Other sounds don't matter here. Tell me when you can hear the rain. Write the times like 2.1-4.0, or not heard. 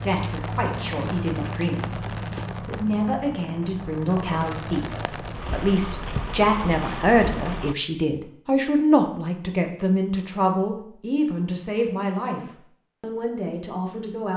0.0-7.8.